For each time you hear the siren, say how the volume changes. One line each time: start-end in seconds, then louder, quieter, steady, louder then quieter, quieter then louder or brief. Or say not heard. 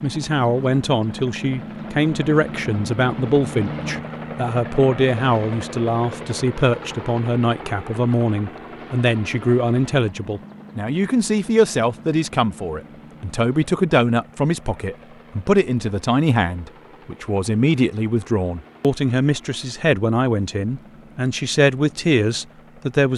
not heard.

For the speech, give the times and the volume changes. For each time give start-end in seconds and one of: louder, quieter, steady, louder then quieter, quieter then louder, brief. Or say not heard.
0.0-23.1 steady.